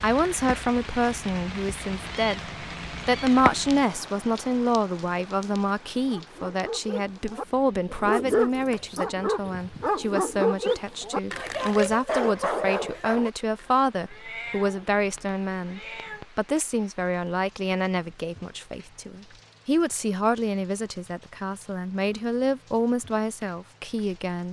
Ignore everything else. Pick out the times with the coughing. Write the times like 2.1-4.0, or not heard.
not heard.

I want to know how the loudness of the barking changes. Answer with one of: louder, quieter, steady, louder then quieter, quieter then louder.
louder.